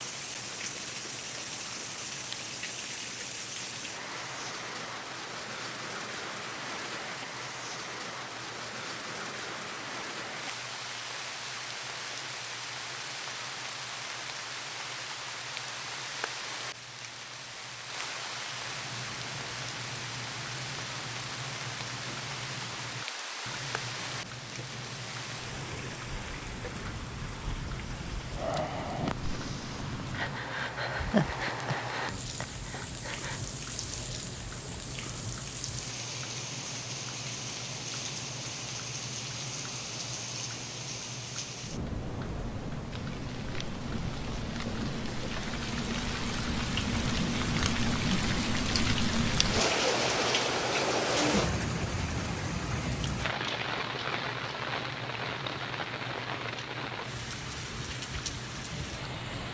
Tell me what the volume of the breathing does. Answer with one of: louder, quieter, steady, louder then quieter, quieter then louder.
louder then quieter.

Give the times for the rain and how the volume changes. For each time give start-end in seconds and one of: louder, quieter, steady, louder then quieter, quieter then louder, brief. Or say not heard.
0.0-59.4 louder.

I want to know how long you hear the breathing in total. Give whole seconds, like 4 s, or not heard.
5 s.